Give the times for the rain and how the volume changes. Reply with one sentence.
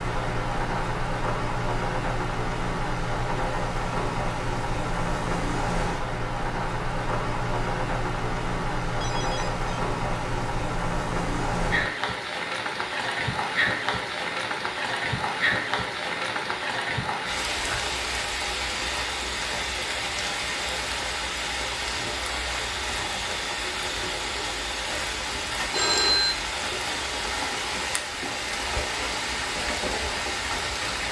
You can hear the rain from 0.0 to 31.0 s, at a steady volume.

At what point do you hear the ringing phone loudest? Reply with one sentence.
The volume of the ringing phone peaks at 26 seconds.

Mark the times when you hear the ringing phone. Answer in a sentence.
The ringing phone can be heard from 9.0 to 9.7 s and from 25.7 to 26.4 s.